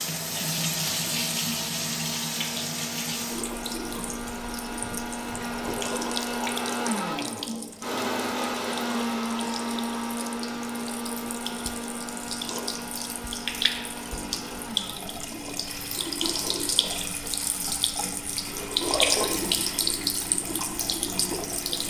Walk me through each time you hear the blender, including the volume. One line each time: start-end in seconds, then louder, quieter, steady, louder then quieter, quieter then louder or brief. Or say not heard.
0.0-21.8 louder then quieter.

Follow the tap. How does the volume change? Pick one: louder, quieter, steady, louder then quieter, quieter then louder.
quieter then louder.